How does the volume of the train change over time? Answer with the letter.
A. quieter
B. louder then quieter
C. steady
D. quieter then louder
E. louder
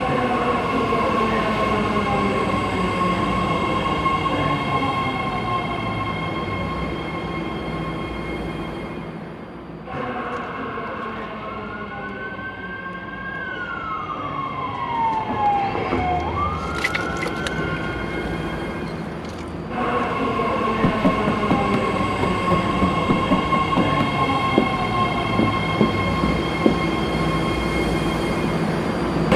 D.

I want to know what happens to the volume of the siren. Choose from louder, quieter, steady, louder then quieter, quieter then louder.
louder then quieter.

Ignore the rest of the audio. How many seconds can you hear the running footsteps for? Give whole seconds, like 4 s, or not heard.
6 s.